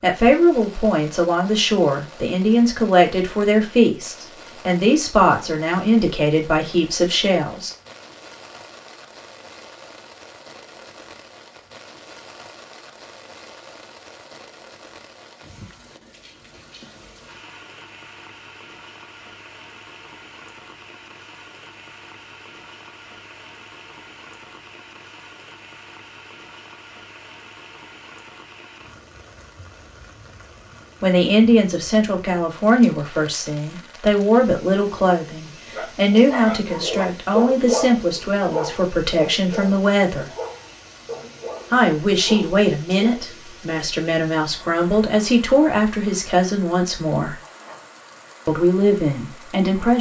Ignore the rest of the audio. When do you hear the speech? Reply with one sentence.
You can hear the speech from 0.0 to 7.7 s, from 31.0 to 40.2 s, from 41.7 to 47.4 s and from 48.5 to 49.9 s.